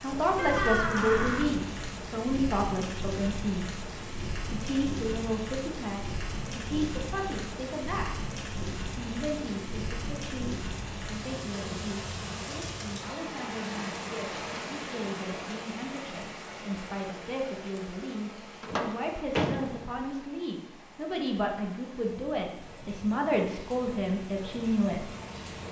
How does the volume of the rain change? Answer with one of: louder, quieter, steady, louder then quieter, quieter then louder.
quieter.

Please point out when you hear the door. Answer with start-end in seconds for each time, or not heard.
0.3-1.5, 18.6-19.9.